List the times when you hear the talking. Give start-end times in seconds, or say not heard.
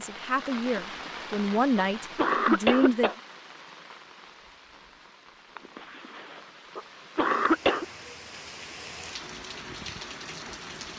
0.0-3.1.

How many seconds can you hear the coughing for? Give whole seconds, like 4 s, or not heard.
5 s.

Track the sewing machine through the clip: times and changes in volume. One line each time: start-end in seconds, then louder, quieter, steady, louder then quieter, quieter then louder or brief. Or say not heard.
not heard.